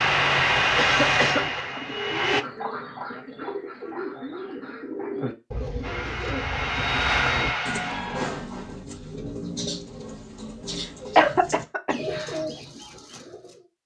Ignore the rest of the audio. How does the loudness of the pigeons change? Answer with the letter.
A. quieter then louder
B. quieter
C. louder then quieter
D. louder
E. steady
E.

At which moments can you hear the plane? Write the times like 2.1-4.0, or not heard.
0.0-2.5, 5.8-8.3.